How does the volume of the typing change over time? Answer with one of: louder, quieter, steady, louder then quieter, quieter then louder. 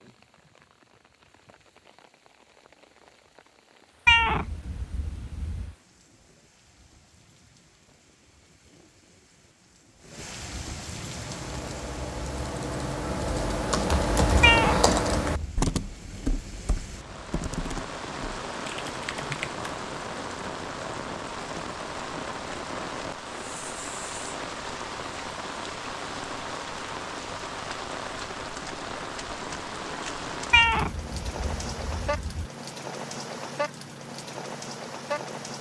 louder then quieter.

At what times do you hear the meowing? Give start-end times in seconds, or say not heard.
4.0-5.7, 14.4-15.7, 30.5-32.5.